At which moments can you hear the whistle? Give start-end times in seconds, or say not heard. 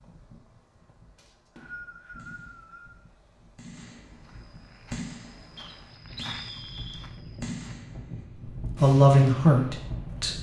1.1-3.0, 5.5-7.0.